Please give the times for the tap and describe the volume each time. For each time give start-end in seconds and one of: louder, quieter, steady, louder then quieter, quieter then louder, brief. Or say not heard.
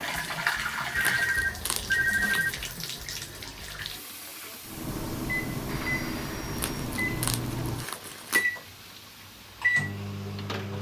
0.0-10.7 quieter.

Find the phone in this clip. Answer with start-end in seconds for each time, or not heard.
0.9-2.5, 5.5-6.8.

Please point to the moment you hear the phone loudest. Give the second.
2 s.